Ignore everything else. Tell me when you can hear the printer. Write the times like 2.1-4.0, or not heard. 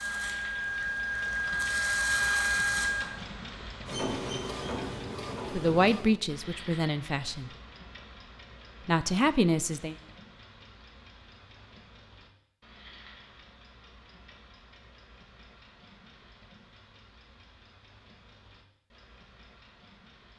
0.0-6.2.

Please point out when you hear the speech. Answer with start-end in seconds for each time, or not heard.
5.5-7.5, 8.8-9.9.